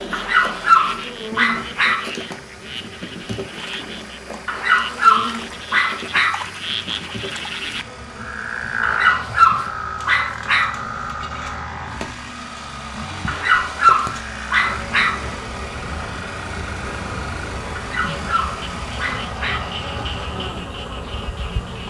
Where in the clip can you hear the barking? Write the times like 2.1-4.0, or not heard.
0.1-2.1, 4.5-6.5, 8.8-10.8, 13.2-15.2, 17.8-19.8.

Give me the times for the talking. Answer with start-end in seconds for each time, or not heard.
not heard.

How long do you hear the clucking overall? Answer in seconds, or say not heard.
not heard.